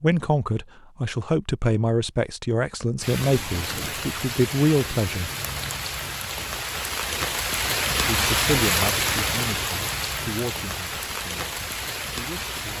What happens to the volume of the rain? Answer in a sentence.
The volume of the rain goes up, then down.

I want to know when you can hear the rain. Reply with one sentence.
The rain can be heard from 3.0 to 12.7 s.